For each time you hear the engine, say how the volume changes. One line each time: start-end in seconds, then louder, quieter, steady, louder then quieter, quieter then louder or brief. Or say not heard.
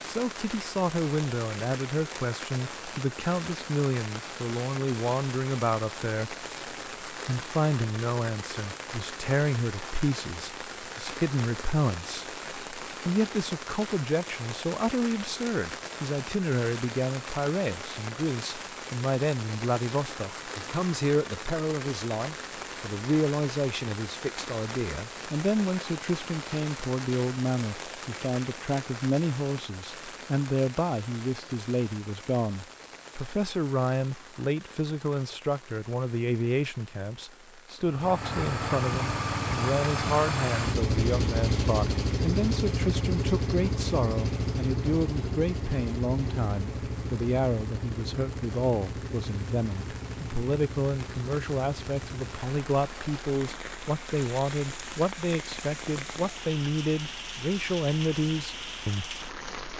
37.8-59.7 quieter.